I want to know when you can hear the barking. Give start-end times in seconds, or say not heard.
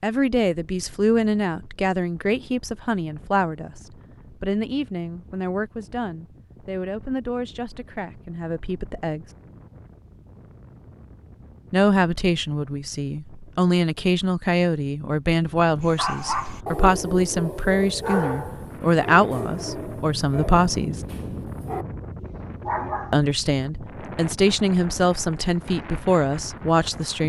15.8-23.2.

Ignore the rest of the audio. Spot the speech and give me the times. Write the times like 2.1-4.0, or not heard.
0.0-9.3, 11.7-21.0, 23.1-27.2.